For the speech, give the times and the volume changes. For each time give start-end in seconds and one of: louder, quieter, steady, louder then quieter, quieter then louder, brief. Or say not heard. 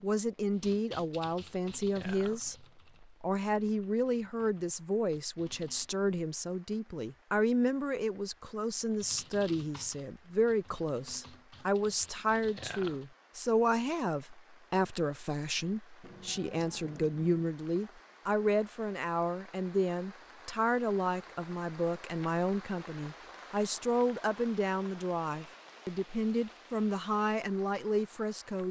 0.0-28.6 steady.